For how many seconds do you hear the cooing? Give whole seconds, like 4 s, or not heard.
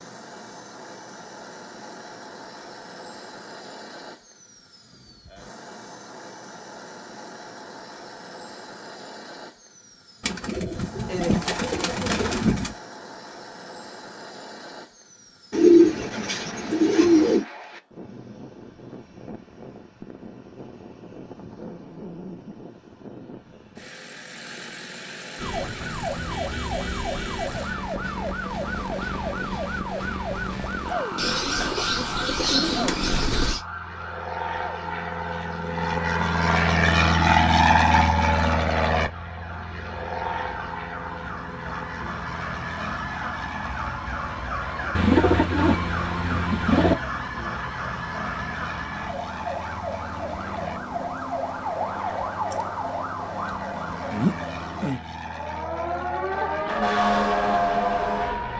9 s.